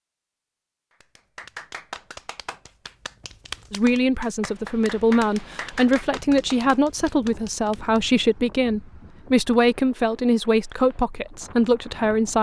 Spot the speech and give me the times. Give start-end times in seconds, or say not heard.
3.7-12.3.